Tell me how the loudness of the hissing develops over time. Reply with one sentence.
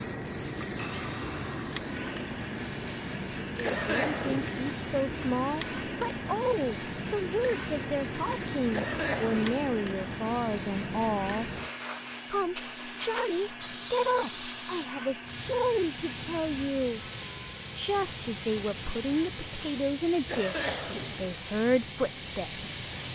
The volume of the hissing stays about the same.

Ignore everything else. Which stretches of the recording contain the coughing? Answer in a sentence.
You can hear the coughing from 3.6 to 4.5 s, from 8.7 to 9.6 s and from 20.2 to 21.4 s.